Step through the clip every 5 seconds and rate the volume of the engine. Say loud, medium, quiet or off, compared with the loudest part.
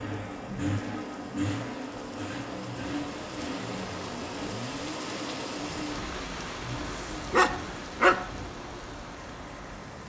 loud, medium.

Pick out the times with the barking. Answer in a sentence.
You can hear the barking from 6.8 to 8.3 s.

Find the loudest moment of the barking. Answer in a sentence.
The volume of the barking peaks at 8 seconds.